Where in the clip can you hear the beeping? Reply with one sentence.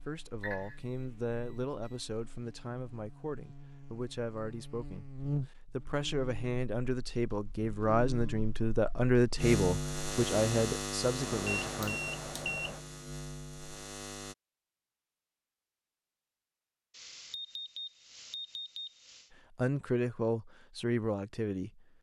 You can hear the beeping from 0.4 to 0.8 s, from 11.2 to 12.8 s and from 16.9 to 19.3 s.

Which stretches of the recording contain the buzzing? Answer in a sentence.
The buzzing can be heard from 0.0 to 14.3 s.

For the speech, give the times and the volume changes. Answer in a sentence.
You can hear the speech from 0.1 to 12.0 s, getting louder; and briefly from 19.6 to 21.8 s.